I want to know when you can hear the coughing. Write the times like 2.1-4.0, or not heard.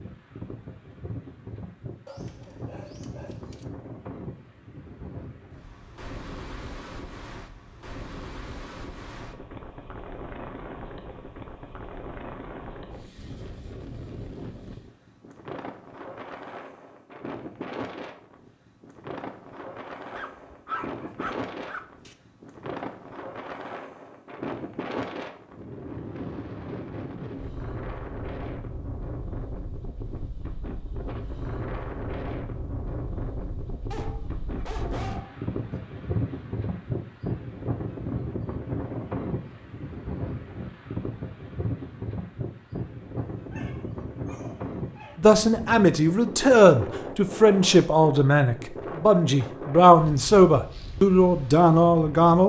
not heard.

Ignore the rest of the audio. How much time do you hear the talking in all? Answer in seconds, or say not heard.
7 s.